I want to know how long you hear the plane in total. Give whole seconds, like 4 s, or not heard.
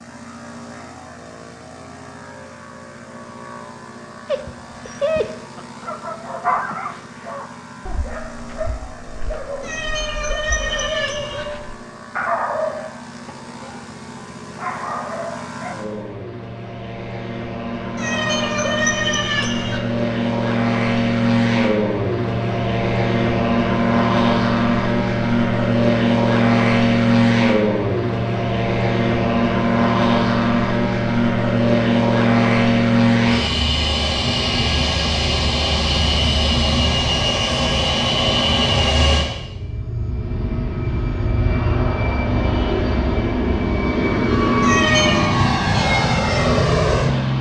47 s.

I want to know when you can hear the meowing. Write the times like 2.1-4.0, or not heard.
9.6-11.4, 17.9-19.8, 44.6-45.2.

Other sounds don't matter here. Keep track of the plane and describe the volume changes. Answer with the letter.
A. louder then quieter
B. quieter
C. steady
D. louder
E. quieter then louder
D.